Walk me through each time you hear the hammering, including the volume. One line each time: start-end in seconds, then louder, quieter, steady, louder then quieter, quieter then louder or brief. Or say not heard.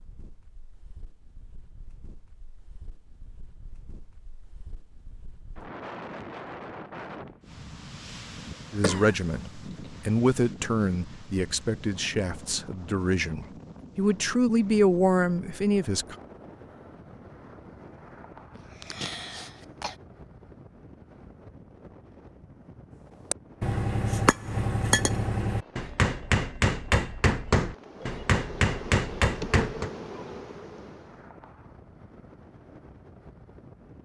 23.3-29.9 steady.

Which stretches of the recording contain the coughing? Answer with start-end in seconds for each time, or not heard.
8.8-9.4, 18.6-19.9.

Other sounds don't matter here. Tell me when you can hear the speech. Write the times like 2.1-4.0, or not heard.
8.7-16.1.